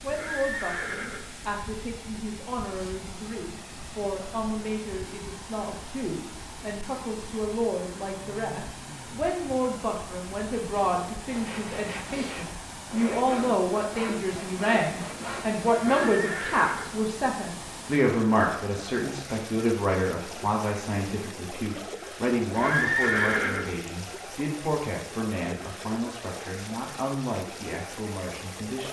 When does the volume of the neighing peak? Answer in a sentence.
The loudest moment of the neighing is at 23 seconds.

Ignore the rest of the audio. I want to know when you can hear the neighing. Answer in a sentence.
You can hear the neighing from 0.1 to 1.5 s, from 15.8 to 17.1 s and from 22.5 to 23.9 s.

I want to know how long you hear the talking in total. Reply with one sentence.
You can hear the talking for 29 seconds altogether.